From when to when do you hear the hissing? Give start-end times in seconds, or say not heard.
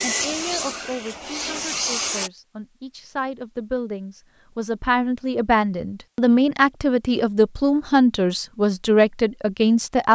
0.0-2.3.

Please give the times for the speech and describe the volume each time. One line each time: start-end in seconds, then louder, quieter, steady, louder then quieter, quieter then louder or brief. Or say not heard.
0.0-10.1 louder.